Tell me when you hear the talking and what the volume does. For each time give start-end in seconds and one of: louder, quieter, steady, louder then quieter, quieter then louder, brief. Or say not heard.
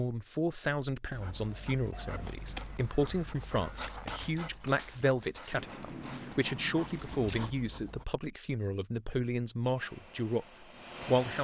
0.0-11.3 steady.